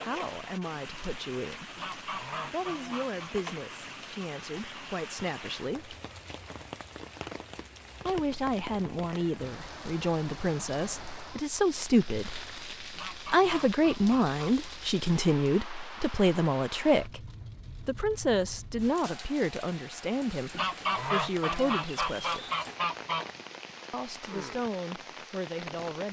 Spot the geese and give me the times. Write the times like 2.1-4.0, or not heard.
1.8-3.3, 12.9-14.7, 20.5-23.2.